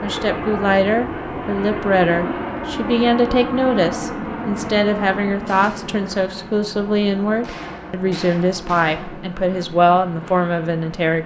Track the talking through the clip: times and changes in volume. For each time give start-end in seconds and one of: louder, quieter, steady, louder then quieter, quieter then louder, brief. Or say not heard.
0.0-11.2 steady.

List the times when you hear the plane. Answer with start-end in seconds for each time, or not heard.
0.0-11.2.